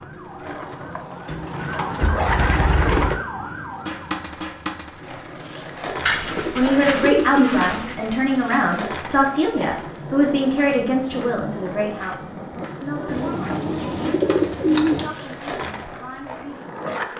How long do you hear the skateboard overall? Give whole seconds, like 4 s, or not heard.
17 s.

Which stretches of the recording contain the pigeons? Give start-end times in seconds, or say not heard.
1.2-3.2, 6.0-8.0, 13.1-15.1.